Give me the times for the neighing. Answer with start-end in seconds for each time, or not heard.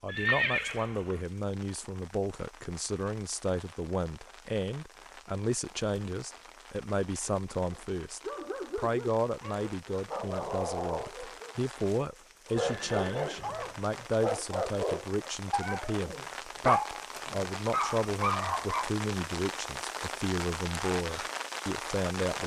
0.1-1.2, 12.6-13.8.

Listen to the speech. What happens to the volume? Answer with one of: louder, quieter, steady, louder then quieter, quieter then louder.
steady.